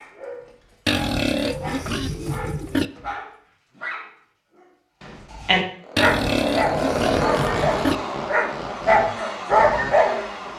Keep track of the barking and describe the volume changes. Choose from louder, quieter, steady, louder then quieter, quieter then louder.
louder.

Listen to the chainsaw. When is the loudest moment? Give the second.
7 s.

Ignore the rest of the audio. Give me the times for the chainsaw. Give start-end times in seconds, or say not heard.
5.8-10.5.